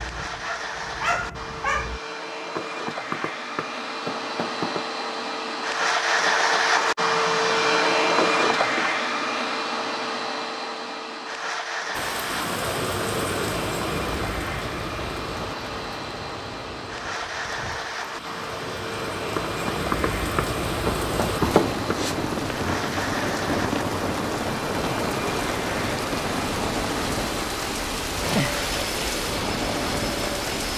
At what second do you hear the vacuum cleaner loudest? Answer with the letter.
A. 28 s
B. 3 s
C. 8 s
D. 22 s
C.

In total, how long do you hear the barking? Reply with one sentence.
You can hear the barking for 2 seconds altogether.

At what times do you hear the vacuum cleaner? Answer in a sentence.
The vacuum cleaner can be heard from 0.0 to 30.6 s.